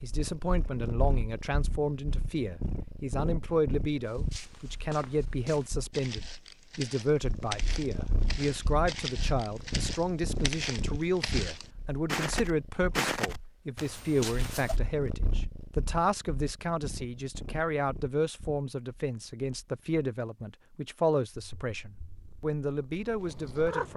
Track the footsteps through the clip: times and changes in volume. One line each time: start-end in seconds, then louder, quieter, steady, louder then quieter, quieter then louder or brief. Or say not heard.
4.0-14.8 louder.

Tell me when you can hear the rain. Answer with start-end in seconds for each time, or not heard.
not heard.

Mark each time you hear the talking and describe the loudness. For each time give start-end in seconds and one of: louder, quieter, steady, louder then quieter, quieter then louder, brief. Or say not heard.
0.0-23.9 steady.